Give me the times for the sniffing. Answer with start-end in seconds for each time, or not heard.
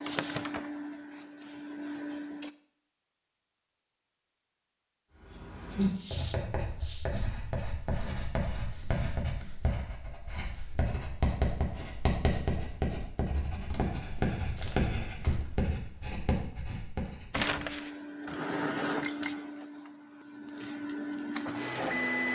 6.0-7.3.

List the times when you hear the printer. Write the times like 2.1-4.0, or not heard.
0.0-2.5, 17.3-22.2.